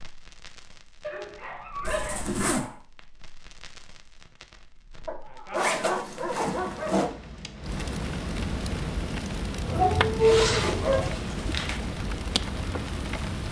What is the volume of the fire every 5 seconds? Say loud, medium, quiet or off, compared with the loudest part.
quiet, loud, loud.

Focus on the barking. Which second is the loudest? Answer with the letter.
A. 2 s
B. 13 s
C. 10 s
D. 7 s
C.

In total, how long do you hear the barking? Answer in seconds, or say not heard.
5 s.